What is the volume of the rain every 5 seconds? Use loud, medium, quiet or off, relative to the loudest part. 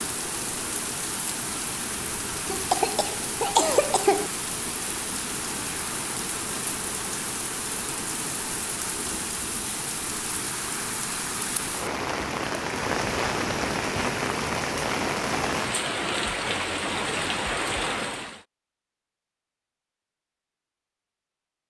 medium, medium, loud, loud, off.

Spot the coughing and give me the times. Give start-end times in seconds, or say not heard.
2.5-4.3.